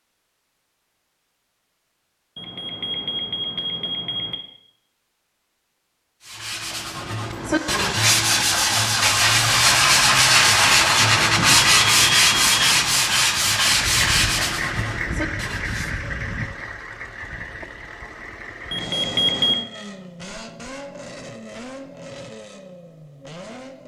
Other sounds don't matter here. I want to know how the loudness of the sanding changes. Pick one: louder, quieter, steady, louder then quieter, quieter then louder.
louder then quieter.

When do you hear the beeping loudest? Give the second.
19 s.